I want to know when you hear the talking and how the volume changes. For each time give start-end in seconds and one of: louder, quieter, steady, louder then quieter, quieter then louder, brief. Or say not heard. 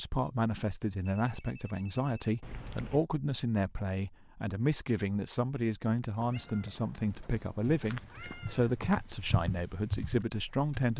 0.0-10.9 steady.